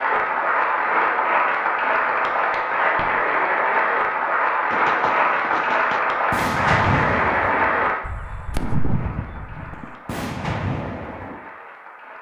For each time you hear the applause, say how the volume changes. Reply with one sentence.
The applause can be heard from 0.0 to 12.1 s, getting quieter.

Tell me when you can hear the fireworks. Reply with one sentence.
The fireworks can be heard from 4.7 to 11.4 s.